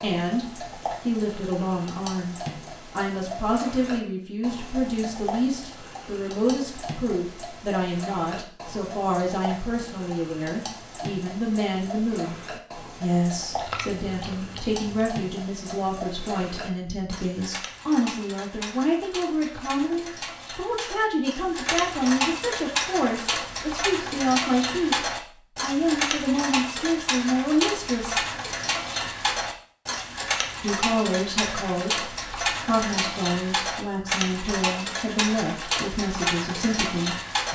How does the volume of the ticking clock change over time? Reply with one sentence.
The loudness of the ticking clock goes up.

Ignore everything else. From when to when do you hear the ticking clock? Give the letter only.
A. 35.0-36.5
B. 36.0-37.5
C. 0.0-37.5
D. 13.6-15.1
C.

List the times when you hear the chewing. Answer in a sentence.
You can hear the chewing from 13.6 to 15.1 s.